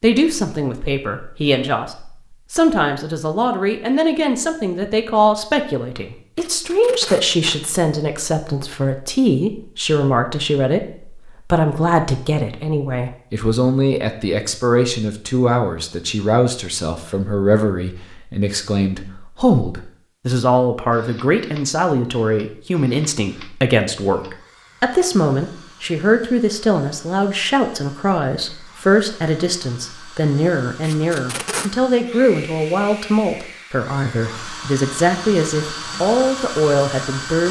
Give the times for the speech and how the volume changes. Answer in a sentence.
The speech can be heard from 0.0 to 37.4 s, at a steady volume.